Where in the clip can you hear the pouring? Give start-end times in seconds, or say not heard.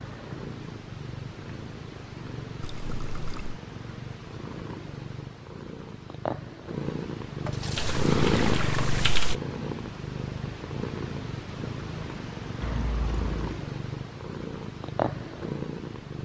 2.6-3.6, 7.5-9.1, 12.6-13.4.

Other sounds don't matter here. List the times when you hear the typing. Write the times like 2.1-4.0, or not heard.
7.8-9.3.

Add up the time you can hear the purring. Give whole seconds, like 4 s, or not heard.
16 s.